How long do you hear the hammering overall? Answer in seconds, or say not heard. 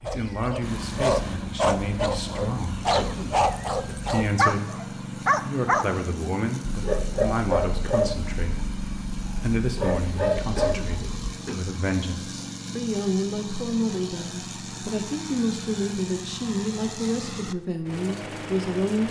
not heard.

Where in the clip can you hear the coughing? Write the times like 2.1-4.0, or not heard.
3.0-4.0, 10.6-11.6.